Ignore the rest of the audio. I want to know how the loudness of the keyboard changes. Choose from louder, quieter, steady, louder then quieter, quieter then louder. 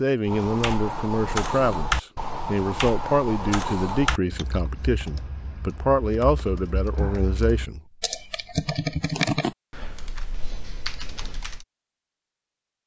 quieter then louder.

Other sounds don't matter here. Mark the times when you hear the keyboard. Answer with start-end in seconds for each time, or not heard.
0.2-11.7.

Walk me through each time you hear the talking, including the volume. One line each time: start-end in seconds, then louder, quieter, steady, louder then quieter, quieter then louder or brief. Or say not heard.
0.0-7.8 steady.